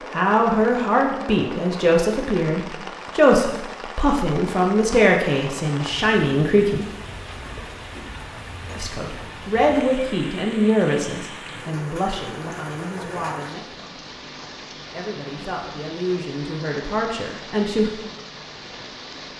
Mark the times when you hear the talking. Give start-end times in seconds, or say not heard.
0.1-6.8, 8.8-14.1, 14.9-17.9.